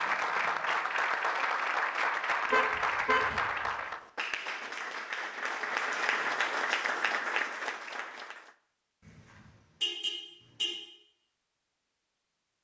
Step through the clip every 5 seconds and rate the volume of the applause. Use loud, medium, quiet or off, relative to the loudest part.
loud, loud, off.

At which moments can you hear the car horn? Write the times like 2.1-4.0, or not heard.
2.5-3.7, 9.1-10.8.